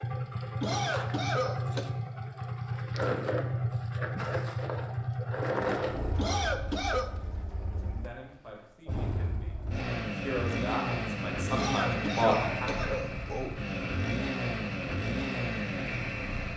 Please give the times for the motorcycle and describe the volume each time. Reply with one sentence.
The motorcycle can be heard from 0.0 to 16.5 s, getting quieter then louder.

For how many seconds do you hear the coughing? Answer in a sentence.
The coughing can be heard for 4 seconds in total.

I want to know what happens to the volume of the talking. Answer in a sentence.
The volume of the talking goes up.